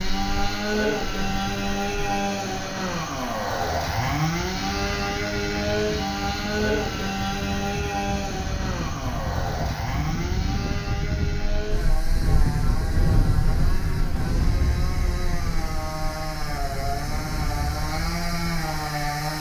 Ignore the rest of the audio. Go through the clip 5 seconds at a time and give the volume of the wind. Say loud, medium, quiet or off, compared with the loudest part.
medium, medium, loud, medium.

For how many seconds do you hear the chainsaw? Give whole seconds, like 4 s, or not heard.
19 s.